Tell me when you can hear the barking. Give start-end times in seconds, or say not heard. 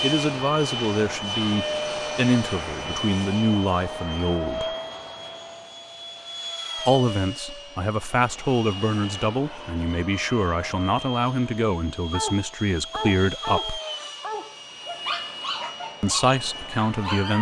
12.1-17.3.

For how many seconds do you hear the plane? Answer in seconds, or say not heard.
17 s.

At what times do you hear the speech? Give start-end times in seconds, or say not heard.
0.0-4.8, 6.8-13.8, 16.0-17.3.